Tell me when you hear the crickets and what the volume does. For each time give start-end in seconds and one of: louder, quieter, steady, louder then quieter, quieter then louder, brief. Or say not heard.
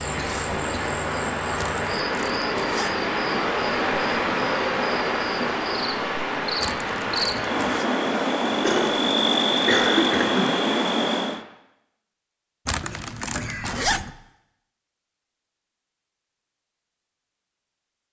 0.0-11.4 louder.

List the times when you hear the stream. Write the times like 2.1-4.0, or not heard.
0.0-11.4.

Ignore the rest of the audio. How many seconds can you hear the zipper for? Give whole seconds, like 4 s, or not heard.
4 s.